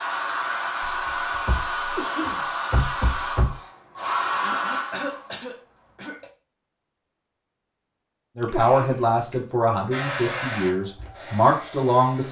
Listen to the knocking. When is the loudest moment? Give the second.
3 s.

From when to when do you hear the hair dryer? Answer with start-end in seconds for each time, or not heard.
0.0-6.3, 9.9-12.2.